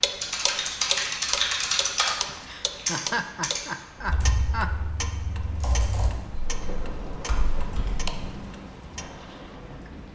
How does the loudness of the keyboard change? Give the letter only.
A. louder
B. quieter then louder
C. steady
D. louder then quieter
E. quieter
E.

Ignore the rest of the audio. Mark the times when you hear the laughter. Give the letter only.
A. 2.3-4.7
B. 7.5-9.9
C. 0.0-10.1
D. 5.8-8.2
A.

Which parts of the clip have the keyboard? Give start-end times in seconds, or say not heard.
0.2-8.1.